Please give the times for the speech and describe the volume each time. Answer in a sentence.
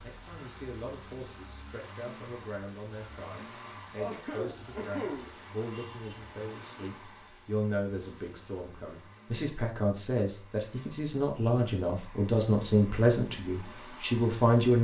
The speech can be heard from 0.0 to 14.7 s, getting louder.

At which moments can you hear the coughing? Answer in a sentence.
You can hear the coughing from 4.0 to 6.2 s.